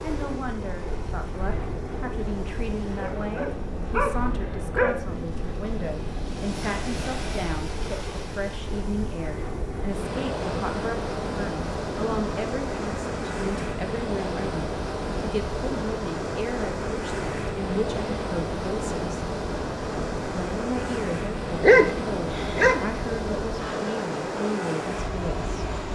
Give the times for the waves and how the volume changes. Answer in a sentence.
You can hear the waves from 0.0 to 25.9 s, getting louder.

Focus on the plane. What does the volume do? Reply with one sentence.
The loudness of the plane stays about the same.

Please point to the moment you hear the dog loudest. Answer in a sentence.
The volume of the dog peaks at 22 seconds.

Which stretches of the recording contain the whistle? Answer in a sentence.
The whistle can't be heard in this clip.